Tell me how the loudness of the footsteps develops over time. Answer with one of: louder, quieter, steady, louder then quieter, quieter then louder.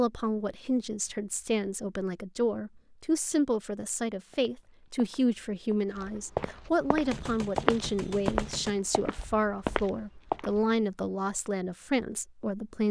louder.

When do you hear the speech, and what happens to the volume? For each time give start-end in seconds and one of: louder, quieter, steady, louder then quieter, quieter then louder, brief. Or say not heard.
0.0-12.8 steady.